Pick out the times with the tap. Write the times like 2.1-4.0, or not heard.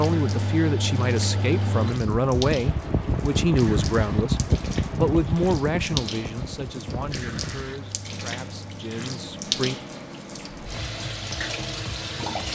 0.0-12.5.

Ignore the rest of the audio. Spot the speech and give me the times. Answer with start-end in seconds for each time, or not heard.
0.0-9.8.